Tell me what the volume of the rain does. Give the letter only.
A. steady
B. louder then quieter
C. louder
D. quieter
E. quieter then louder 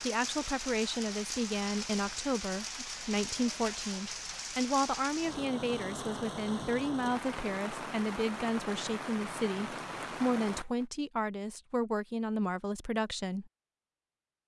A.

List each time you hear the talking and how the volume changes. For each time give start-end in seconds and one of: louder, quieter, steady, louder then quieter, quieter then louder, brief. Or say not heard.
0.0-13.5 steady.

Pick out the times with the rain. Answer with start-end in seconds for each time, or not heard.
0.0-10.8.